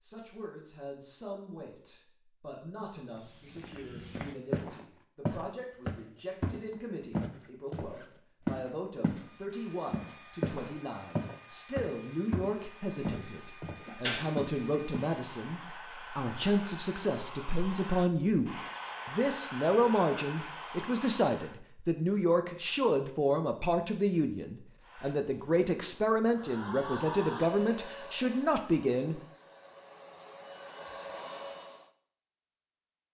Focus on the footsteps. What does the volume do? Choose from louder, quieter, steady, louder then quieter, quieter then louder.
louder.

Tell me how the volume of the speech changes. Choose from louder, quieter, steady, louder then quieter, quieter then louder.
louder.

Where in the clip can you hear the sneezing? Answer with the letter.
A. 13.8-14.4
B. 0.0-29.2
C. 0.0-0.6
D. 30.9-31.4
A.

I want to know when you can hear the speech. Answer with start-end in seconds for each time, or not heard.
0.0-29.2.